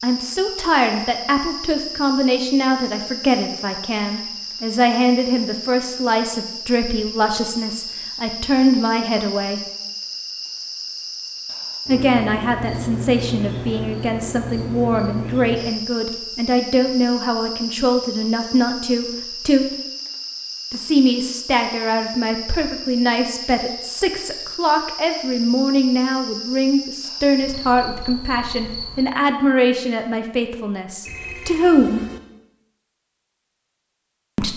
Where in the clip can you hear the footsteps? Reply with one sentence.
You can't hear the footsteps here.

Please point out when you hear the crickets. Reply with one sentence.
You can hear the crickets from 0.0 to 29.1 s.